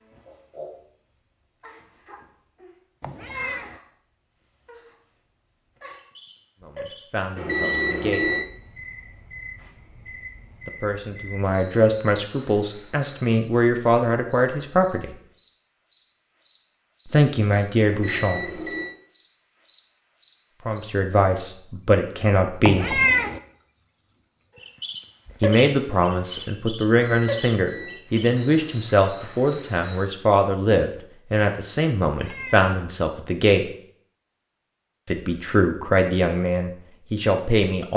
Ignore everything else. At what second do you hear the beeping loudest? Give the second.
8 s.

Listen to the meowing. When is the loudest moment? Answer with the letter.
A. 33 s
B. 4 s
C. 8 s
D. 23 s
D.